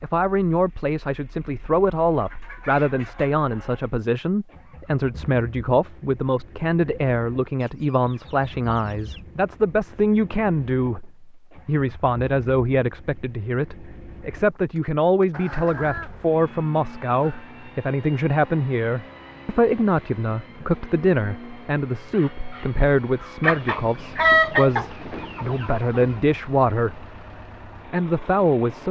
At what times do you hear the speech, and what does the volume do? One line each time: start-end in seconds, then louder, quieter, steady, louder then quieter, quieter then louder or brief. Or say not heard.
0.0-27.1 steady
27.9-28.8 brief.